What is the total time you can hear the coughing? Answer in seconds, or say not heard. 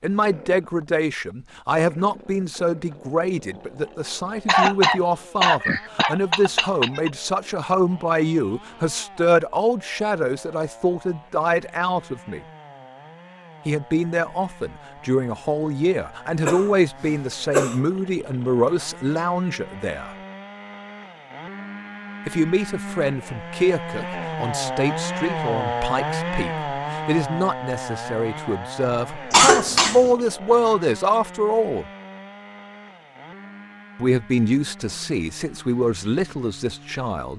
5 s.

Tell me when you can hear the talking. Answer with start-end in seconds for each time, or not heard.
0.0-12.4, 13.7-20.1, 22.2-31.9, 34.0-37.3.